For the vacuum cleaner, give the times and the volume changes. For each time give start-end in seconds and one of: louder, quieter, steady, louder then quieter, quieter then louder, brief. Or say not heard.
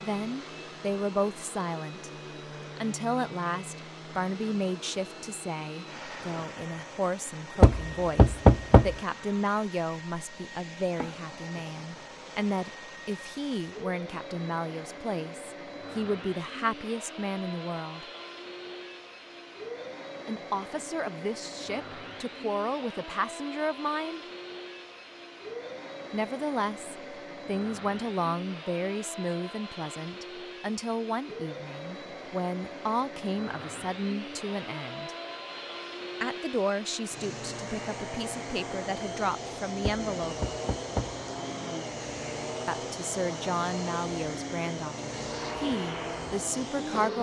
0.0-47.1 louder.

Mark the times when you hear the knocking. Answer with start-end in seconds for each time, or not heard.
7.6-8.9, 39.8-41.2.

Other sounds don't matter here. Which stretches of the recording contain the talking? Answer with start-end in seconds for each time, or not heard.
0.0-2.1, 2.8-18.1, 20.2-24.2, 26.1-35.1, 36.2-40.4, 42.6-47.1.